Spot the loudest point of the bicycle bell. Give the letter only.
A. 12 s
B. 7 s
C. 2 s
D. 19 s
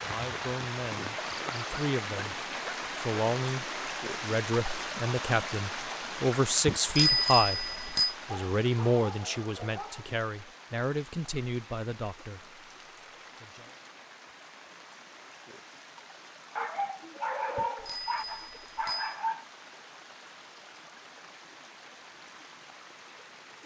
B.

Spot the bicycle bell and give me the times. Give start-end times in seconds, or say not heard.
6.7-8.1, 17.6-19.1.